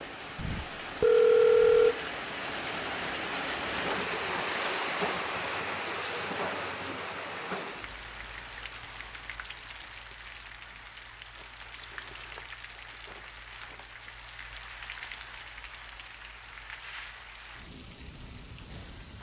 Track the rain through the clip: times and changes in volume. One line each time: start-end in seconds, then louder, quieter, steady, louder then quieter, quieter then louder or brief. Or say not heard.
0.0-19.1 quieter.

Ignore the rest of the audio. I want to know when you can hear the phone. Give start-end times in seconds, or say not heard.
0.3-1.9.